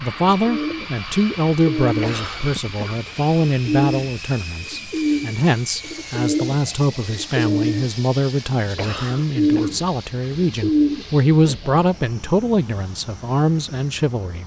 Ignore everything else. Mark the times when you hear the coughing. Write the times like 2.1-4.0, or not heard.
2.0-3.0, 8.8-9.7.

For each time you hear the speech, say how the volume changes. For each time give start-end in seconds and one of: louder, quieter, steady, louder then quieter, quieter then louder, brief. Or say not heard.
0.0-14.4 steady.